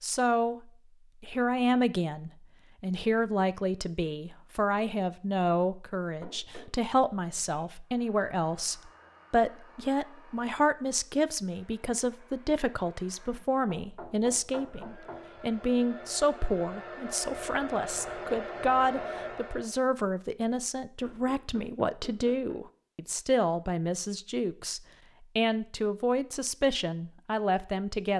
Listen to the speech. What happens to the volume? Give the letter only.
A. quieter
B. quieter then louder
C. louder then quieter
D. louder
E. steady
E.